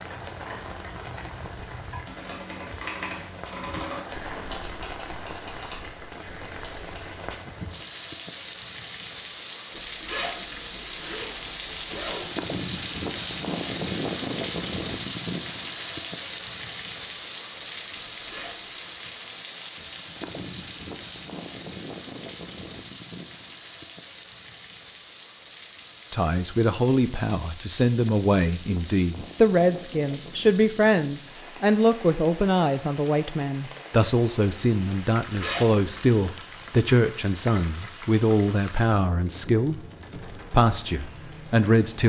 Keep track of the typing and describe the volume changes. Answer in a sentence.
The volume of the typing goes up, then down.